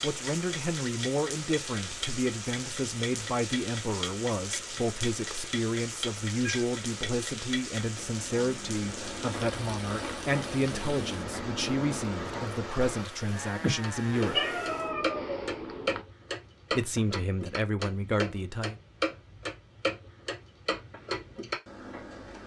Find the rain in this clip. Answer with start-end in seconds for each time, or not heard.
0.0-14.9.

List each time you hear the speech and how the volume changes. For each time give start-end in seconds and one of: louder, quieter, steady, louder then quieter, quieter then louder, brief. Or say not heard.
0.0-14.4 steady
16.7-18.8 brief.